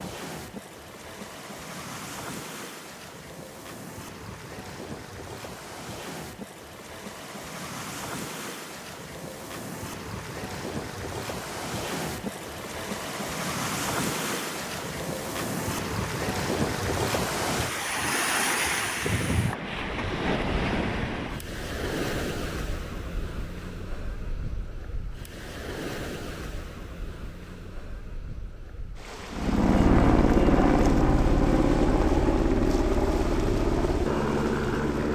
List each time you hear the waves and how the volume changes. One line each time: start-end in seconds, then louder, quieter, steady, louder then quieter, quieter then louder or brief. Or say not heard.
0.0-35.1 louder then quieter.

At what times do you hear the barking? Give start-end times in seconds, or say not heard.
not heard.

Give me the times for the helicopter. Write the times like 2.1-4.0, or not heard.
29.3-35.1.